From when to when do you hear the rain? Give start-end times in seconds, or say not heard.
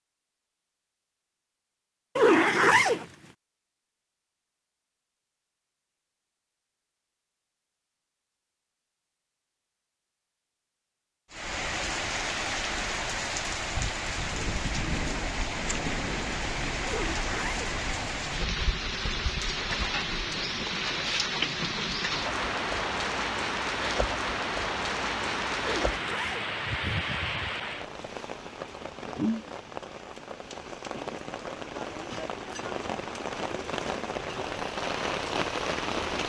11.3-36.2.